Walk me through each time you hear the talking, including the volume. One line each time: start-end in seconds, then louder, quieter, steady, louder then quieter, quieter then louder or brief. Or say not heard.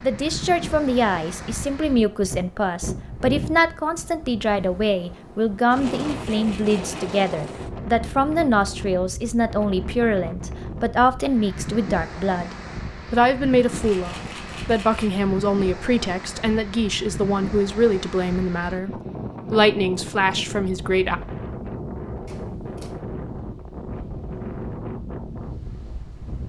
0.0-18.9 steady
19.5-21.2 brief.